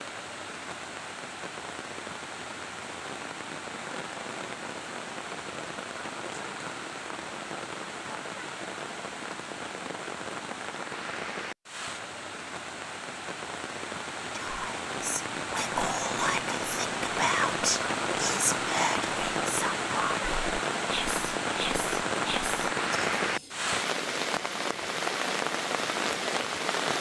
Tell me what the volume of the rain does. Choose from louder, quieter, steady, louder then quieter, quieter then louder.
louder.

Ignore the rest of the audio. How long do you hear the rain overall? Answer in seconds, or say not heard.
27 s.